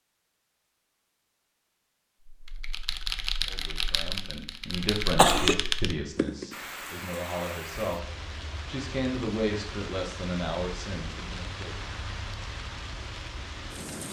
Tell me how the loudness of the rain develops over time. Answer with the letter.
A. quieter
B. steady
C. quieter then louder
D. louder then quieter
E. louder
B.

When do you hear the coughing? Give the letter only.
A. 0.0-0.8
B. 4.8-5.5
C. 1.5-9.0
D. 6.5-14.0
B.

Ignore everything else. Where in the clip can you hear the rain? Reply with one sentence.
You can hear the rain from 6.5 to 14.0 s.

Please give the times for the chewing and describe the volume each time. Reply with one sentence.
The chewing can't be heard in this clip.